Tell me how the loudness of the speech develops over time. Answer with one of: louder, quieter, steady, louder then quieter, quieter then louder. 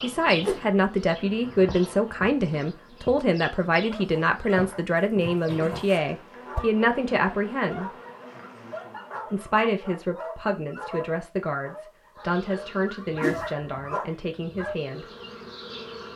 quieter.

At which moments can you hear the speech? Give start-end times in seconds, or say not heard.
0.0-7.9, 9.3-15.1.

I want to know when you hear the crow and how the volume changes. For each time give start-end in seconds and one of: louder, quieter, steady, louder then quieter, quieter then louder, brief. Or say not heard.
not heard.